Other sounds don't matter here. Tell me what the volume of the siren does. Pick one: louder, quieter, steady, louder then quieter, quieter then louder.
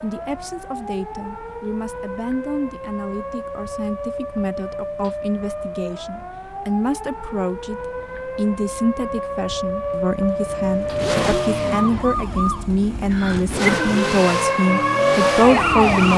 louder.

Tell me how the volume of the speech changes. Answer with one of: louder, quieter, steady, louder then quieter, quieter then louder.
louder.